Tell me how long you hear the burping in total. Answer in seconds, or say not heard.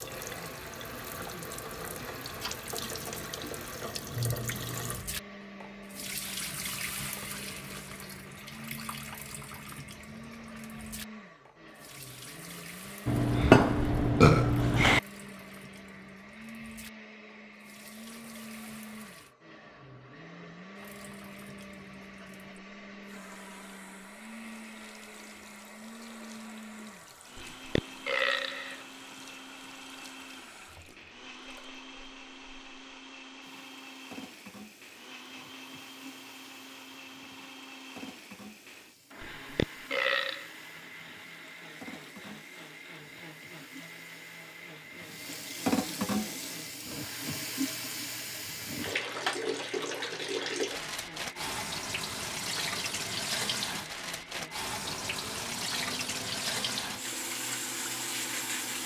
5 s.